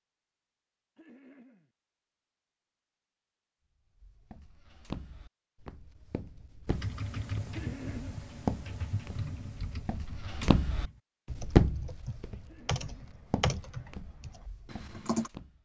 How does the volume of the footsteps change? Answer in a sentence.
The loudness of the footsteps goes up, then down.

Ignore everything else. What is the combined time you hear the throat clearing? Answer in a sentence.
You can hear the throat clearing for 2 seconds altogether.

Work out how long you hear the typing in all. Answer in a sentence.
You can hear the typing for 9 seconds altogether.